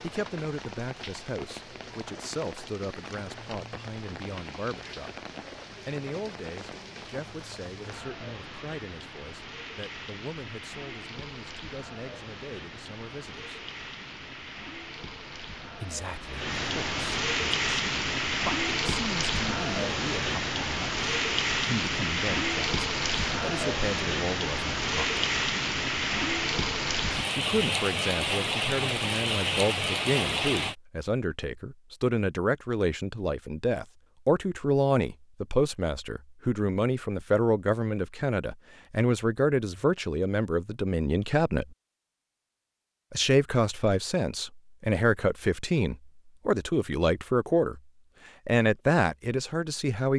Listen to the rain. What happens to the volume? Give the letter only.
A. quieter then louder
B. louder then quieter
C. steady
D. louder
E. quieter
D.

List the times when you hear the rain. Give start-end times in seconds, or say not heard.
0.0-30.8.